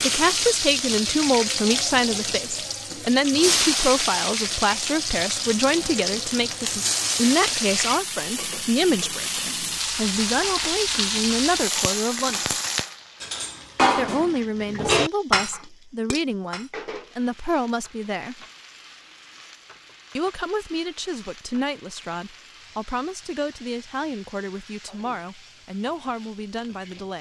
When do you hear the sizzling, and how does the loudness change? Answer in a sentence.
The sizzling can be heard from 0.0 to 27.1 s, getting quieter.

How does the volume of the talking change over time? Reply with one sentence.
The loudness of the talking goes down.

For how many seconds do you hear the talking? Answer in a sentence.
The talking can be heard for 24 seconds in total.